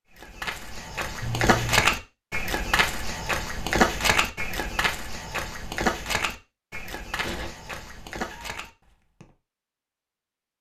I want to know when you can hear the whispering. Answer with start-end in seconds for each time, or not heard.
not heard.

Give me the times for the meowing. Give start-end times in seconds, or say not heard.
1.2-1.9, 7.2-8.6.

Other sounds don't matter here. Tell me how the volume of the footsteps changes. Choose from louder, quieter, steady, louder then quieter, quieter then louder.
quieter.